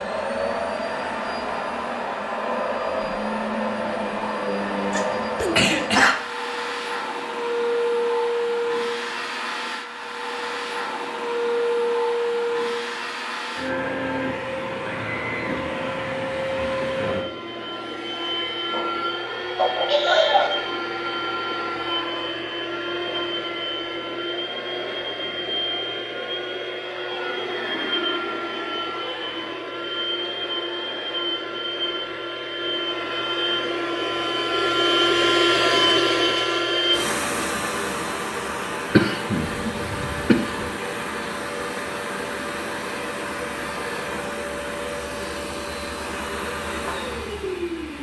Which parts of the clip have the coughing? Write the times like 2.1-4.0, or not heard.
4.9-6.2, 19.6-20.6, 38.9-40.6.